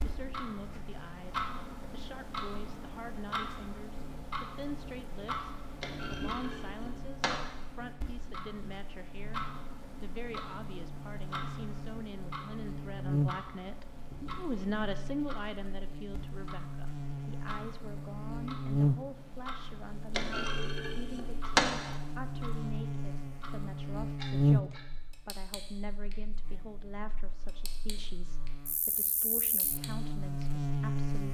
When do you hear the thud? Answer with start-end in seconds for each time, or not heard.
5.8-7.4, 20.1-21.9.